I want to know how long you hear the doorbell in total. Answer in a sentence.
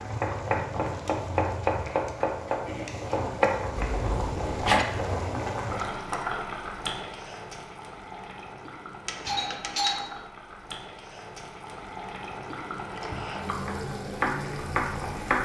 You can hear the doorbell for 2 seconds altogether.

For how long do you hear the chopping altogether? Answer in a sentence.
You can hear the chopping for 5 seconds altogether.